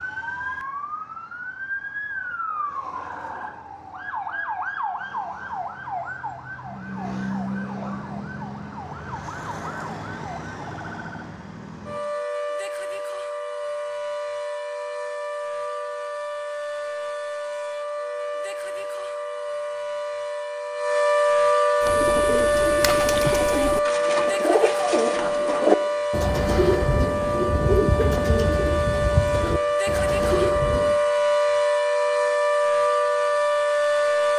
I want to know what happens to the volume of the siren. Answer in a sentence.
The loudness of the siren goes up.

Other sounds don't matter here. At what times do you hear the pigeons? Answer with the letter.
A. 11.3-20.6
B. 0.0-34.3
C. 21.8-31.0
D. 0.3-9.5
C.